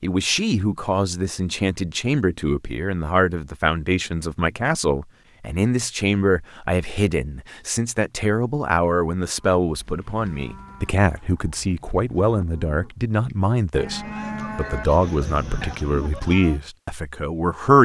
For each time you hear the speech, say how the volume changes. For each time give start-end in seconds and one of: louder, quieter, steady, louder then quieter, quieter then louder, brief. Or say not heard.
0.0-17.8 steady.